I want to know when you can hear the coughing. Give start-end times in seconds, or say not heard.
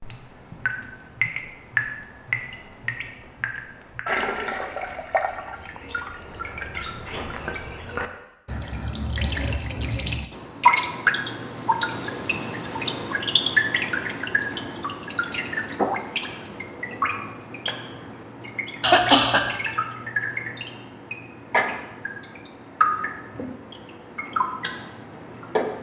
18.8-19.4.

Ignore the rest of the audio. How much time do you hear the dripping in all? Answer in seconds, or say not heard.
26 s.